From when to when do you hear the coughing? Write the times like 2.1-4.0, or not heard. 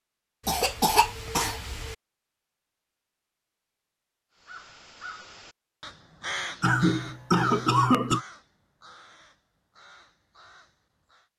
0.5-1.9, 6.6-8.2.